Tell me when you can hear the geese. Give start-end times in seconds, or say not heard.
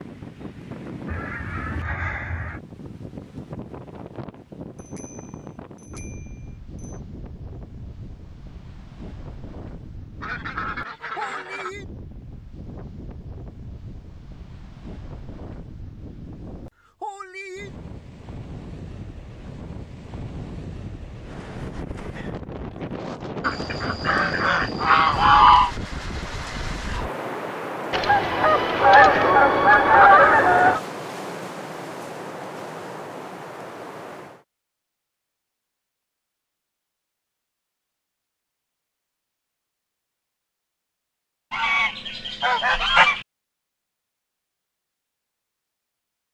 1.1-2.6, 10.2-11.7, 23.4-25.7, 27.9-30.8, 41.5-43.2.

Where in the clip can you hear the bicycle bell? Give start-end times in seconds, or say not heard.
4.8-7.0.